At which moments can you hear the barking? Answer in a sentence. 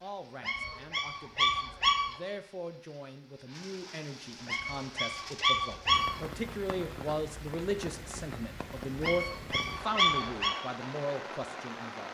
You can hear the barking from 0.4 to 2.1 s, from 4.5 to 6.2 s and from 9.0 to 10.6 s.